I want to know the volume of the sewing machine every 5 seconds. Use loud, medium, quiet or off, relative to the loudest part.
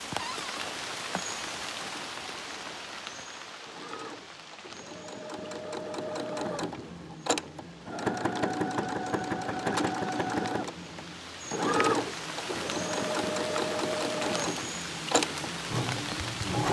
quiet, loud, loud, loud.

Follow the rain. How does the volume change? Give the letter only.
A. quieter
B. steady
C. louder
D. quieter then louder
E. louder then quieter
D.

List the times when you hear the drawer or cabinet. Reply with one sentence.
You can hear the drawer or cabinet from 0.1 to 0.7 s.